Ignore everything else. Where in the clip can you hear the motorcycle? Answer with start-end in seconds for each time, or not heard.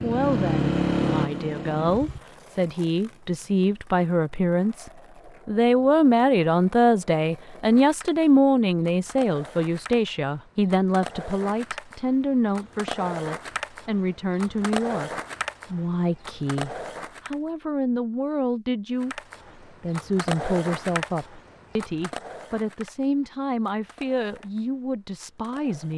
0.0-2.2.